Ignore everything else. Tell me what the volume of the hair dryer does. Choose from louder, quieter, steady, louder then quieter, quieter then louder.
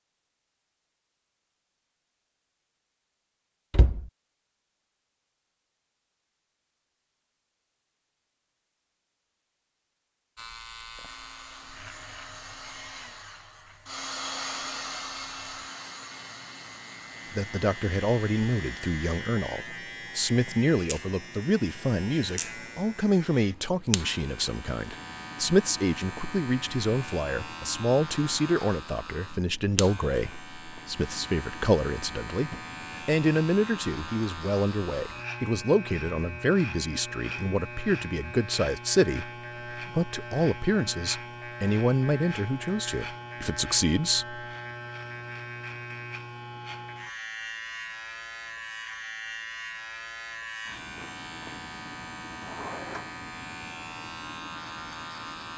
louder then quieter.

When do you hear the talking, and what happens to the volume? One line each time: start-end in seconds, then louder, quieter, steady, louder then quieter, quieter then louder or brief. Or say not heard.
17.3-44.5 steady.